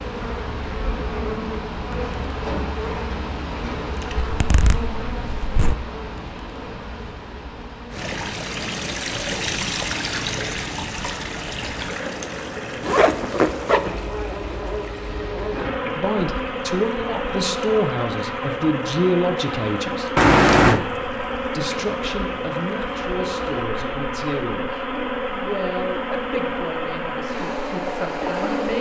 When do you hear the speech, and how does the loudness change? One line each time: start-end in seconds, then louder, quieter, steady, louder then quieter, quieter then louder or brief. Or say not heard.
15.9-28.7 quieter.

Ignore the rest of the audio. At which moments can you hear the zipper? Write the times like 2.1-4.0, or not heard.
4.2-5.8, 12.8-14.0, 20.1-20.8.